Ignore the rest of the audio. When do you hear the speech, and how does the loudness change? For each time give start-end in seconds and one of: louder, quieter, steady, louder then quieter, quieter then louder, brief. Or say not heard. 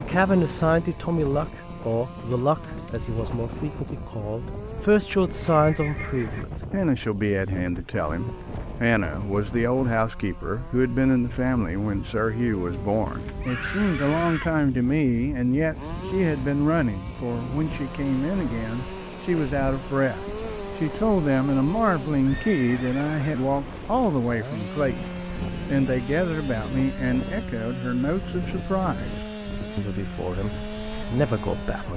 0.0-31.9 steady.